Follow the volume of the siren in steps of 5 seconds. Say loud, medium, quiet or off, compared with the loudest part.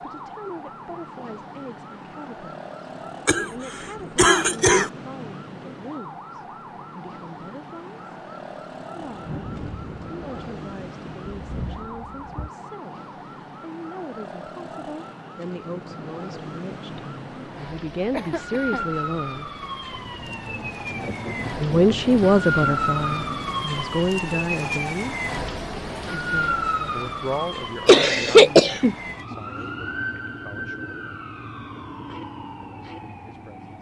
medium, medium, medium, medium, loud, loud, medium.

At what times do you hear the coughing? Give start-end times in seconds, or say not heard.
3.2-4.9, 18.1-18.9, 27.9-29.4.